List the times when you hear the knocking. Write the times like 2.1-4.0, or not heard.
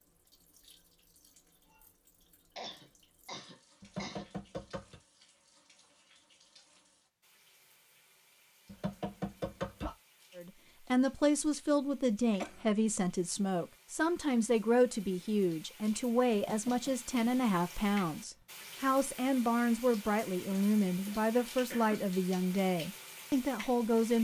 3.8-5.0, 8.7-9.9, 16.3-16.9.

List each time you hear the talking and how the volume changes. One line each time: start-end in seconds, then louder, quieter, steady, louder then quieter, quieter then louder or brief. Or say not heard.
10.3-24.1 steady.